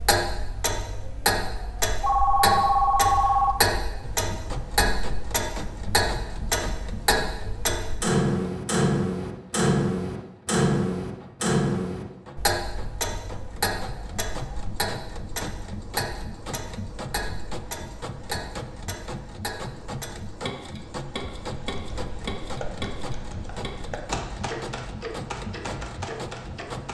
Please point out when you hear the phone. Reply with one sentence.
You can hear the phone from 2.0 to 3.5 s.